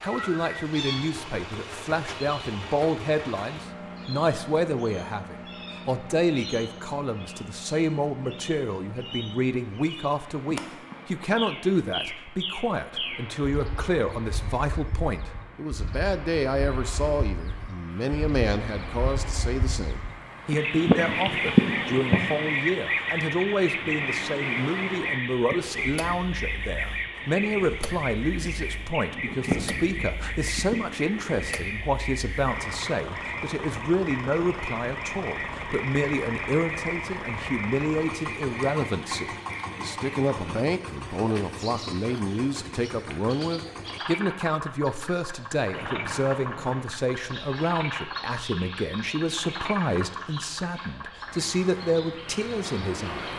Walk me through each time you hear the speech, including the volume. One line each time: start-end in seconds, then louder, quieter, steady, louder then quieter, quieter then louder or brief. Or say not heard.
0.0-53.3 steady.